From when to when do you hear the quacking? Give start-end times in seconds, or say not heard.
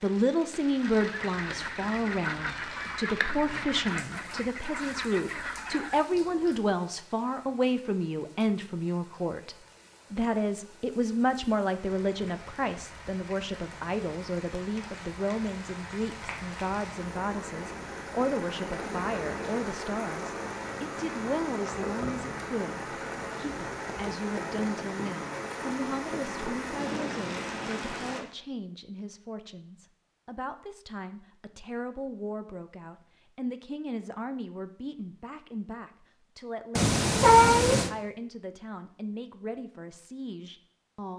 0.6-6.7.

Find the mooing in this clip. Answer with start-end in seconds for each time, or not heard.
not heard.